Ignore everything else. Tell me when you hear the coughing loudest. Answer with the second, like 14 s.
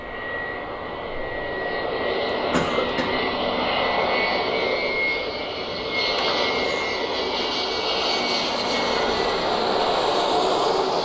3 s.